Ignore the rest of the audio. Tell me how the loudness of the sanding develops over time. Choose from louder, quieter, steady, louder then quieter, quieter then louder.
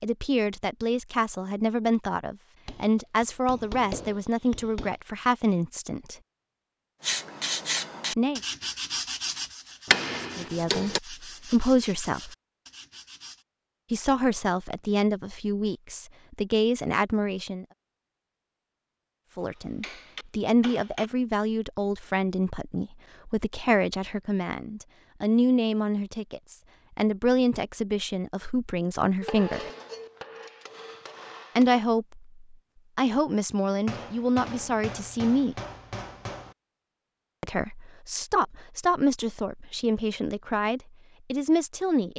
quieter.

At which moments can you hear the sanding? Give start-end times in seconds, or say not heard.
7.0-13.4.